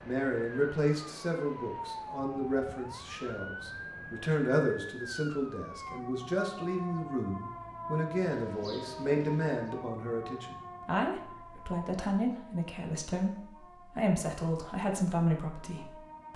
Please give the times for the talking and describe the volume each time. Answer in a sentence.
You can hear the talking from 0.0 to 16.3 s, at a steady volume.